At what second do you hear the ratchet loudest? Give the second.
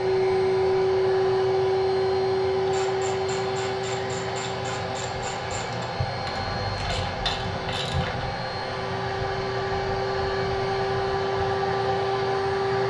7 s.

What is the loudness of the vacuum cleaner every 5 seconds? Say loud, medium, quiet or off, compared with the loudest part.
loud, medium, loud.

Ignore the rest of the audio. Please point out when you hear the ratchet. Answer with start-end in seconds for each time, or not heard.
2.6-8.2.